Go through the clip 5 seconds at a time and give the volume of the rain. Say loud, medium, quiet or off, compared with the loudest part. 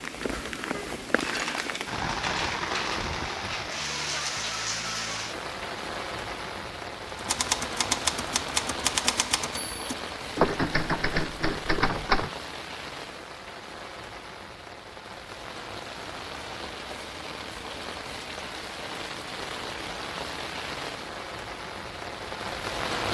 loud, loud, medium, medium, loud.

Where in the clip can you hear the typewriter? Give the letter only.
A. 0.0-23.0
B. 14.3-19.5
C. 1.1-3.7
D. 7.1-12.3
D.